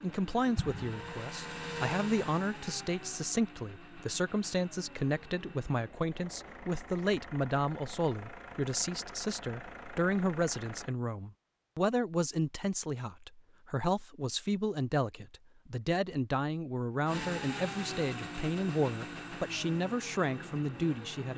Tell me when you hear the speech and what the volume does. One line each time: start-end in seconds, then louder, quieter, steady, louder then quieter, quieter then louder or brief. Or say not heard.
0.0-21.3 steady.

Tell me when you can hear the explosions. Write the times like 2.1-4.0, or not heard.
0.6-1.2.